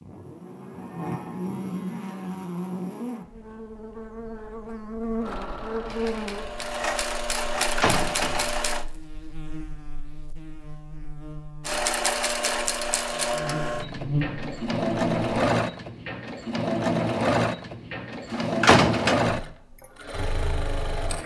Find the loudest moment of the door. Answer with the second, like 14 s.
19 s.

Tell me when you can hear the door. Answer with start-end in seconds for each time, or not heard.
7.5-8.6, 18.3-19.1.